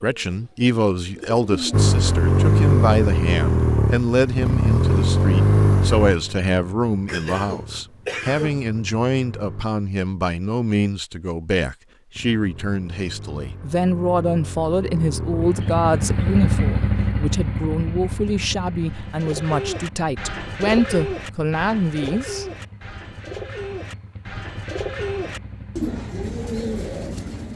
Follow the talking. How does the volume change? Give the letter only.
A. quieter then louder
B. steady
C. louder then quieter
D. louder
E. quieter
B.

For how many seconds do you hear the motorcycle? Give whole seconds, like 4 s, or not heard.
23 s.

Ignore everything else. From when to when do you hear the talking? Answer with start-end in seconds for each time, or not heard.
0.0-22.4.